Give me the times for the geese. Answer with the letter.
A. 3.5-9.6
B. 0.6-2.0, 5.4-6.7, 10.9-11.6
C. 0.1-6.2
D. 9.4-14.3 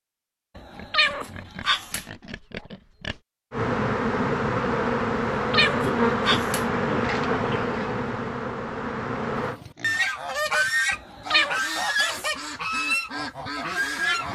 D.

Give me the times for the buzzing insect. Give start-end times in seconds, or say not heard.
3.5-9.6.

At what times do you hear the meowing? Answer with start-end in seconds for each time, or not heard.
0.6-2.0, 5.4-6.7, 10.9-11.6.